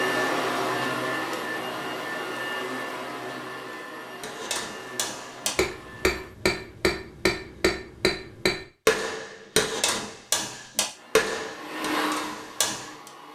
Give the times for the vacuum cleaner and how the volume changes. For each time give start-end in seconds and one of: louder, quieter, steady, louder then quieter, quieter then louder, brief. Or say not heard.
0.0-6.3 quieter
10.9-13.3 brief.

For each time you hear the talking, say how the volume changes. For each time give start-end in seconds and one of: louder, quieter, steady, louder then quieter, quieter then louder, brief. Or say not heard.
not heard.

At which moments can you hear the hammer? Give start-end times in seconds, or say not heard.
4.2-13.1.